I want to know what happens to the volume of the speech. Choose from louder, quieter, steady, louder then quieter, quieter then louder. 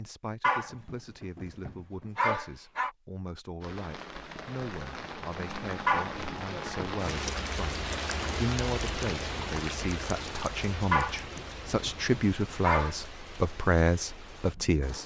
louder.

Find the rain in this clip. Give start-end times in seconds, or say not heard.
3.6-15.0.